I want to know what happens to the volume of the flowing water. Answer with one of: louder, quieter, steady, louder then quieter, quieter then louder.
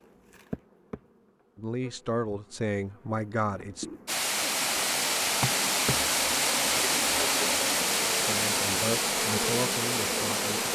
steady.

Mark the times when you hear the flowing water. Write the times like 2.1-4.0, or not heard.
4.0-10.7.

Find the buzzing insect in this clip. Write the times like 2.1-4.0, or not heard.
0.0-10.7.